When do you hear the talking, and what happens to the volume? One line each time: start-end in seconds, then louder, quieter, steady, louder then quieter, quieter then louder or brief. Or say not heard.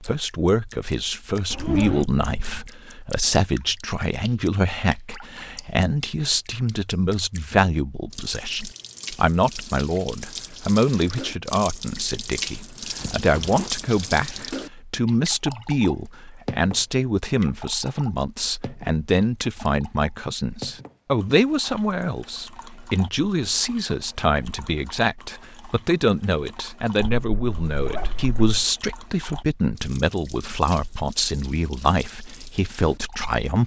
0.0-33.6 steady.